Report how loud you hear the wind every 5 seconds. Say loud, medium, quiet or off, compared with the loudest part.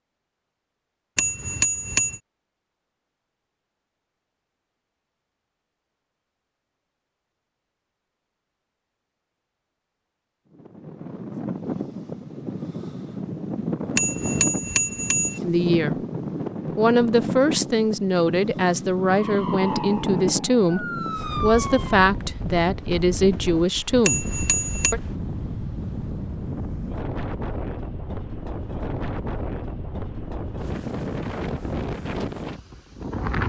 off, off, loud, loud, loud, loud, loud.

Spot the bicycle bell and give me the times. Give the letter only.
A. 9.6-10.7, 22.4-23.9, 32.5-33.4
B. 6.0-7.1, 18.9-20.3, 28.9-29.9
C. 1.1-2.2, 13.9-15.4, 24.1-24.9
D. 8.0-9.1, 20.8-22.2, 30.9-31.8
C.